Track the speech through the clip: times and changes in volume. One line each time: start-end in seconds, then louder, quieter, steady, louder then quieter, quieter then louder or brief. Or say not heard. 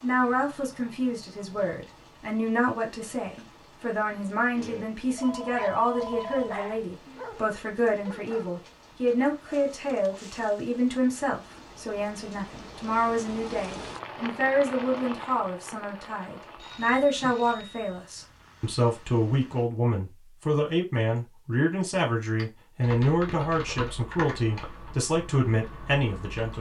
0.0-26.5 steady.